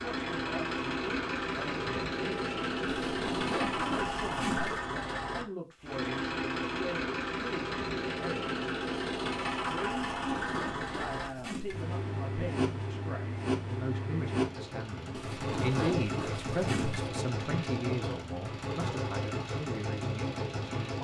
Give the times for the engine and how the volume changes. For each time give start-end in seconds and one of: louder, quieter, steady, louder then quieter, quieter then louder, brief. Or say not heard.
0.0-20.9 steady.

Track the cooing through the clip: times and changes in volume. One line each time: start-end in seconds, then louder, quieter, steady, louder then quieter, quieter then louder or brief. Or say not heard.
not heard.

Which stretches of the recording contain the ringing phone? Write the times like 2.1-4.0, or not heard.
not heard.